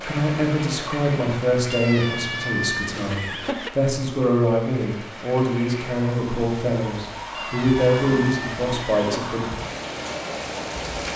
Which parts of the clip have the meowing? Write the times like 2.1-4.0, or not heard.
1.7-3.7, 7.3-9.2.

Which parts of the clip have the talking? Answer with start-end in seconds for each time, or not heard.
0.0-9.6.